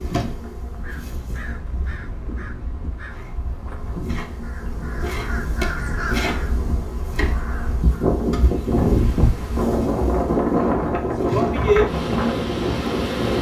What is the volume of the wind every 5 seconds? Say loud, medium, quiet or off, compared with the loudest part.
quiet, loud, loud.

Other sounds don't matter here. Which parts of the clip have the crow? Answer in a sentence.
You can hear the crow from 0.7 to 8.2 s.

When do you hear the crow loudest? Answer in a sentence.
The volume of the crow peaks at 6 seconds.